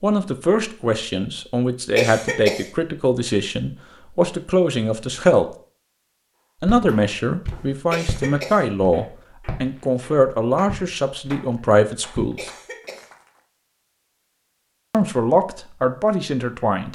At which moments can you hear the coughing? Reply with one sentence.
You can hear the coughing from 1.9 to 2.7 s, from 7.9 to 8.7 s and from 12.3 to 13.1 s.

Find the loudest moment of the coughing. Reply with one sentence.
The loudest moment of the coughing is at 2 seconds.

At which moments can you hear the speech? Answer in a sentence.
The speech can be heard from 0.0 to 5.5 s, from 6.6 to 12.5 s and from 14.9 to 16.8 s.